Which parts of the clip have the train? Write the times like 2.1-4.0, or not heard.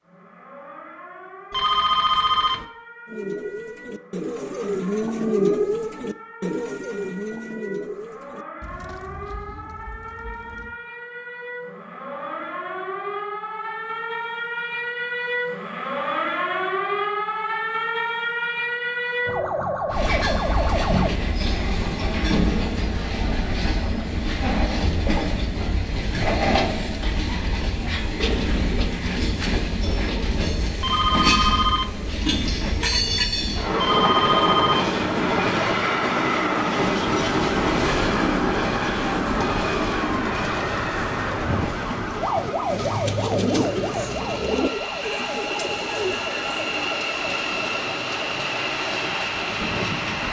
19.9-50.2.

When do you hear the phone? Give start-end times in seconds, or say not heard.
1.5-2.6, 30.8-31.9, 33.8-34.9.